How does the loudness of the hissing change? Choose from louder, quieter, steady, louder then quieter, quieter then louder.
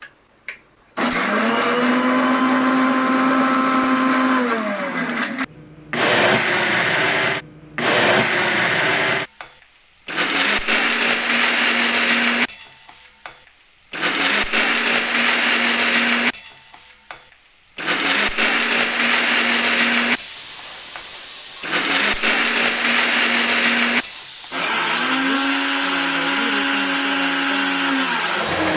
steady.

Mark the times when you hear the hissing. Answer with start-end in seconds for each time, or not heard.
18.8-28.7.